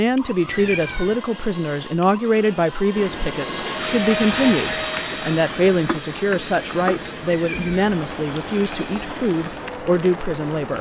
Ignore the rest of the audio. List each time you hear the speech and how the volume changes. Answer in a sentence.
You can hear the speech from 0.0 to 10.7 s, at a steady volume.